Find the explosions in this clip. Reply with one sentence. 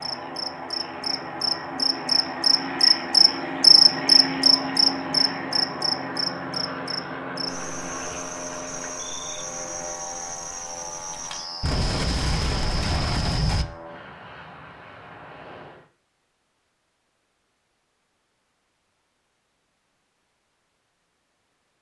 You can hear the explosions from 11.6 to 13.7 s.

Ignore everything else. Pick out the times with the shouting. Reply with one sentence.
The shouting can't be heard in this clip.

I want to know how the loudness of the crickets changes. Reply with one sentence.
The loudness of the crickets goes up, then down.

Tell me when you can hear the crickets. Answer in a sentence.
The crickets can be heard from 0.0 to 13.7 s.